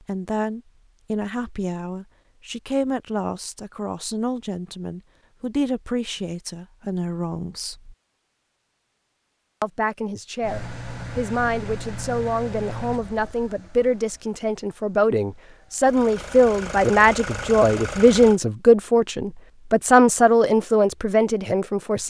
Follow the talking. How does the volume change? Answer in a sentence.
The volume of the talking goes up.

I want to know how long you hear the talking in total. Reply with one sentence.
The talking can be heard for 20 seconds in total.